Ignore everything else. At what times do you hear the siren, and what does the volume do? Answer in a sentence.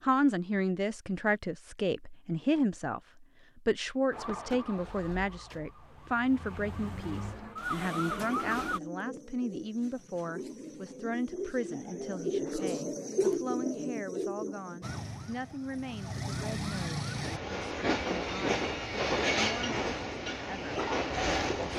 The siren can be heard from 4.1 to 8.8 s, getting quieter then louder; and briefly from 14.8 to 17.4 s.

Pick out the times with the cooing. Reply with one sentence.
The cooing can be heard from 7.8 to 14.8 s.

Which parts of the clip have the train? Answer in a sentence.
You can hear the train from 16.9 to 21.7 s.